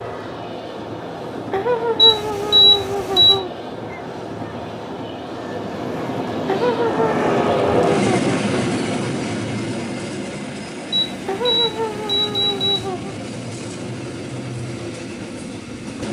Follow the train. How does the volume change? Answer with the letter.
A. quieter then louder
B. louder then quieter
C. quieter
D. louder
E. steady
B.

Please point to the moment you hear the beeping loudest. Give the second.
3 s.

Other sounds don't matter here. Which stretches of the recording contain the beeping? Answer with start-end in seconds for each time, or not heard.
1.9-3.4, 10.9-12.8.